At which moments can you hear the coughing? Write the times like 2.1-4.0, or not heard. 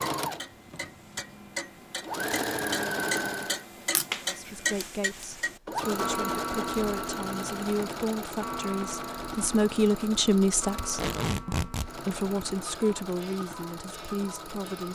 not heard.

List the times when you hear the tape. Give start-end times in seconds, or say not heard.
10.8-11.9.